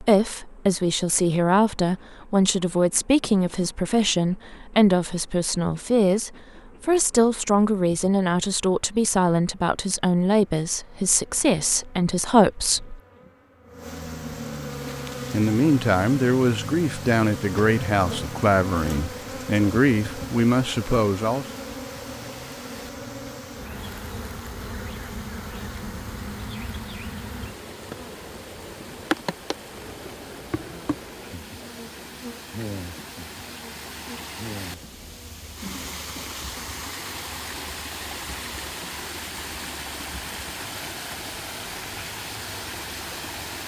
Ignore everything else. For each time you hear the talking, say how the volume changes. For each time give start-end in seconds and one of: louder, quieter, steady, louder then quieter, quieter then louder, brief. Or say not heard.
0.0-13.0 steady
15.3-21.4 steady.